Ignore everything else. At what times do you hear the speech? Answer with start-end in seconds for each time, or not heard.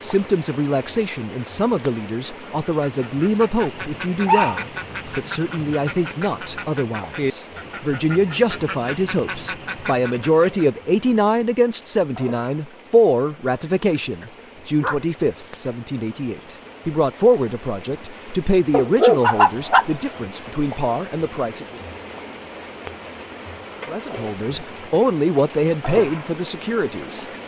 0.0-21.8, 23.9-27.2.